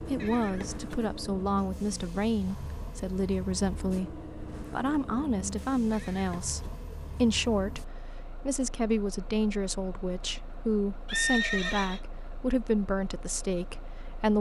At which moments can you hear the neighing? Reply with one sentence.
You can hear the neighing from 0.2 to 1.1 s, from 5.9 to 6.5 s and from 11.1 to 12.0 s.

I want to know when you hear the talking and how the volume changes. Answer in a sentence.
You can hear the talking from 0.1 to 14.3 s, at a steady volume.